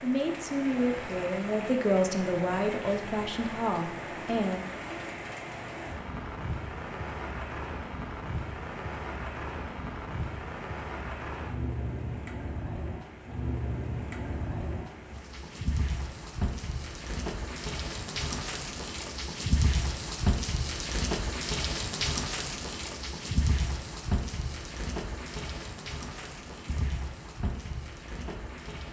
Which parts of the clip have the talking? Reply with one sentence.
You can hear the talking from 0.0 to 4.7 s.